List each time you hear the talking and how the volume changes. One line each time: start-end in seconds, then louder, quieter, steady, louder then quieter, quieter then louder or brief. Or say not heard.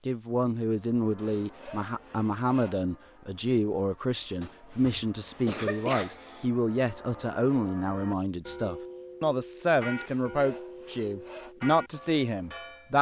0.1-12.9 steady.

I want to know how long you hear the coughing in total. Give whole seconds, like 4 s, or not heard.
2 s.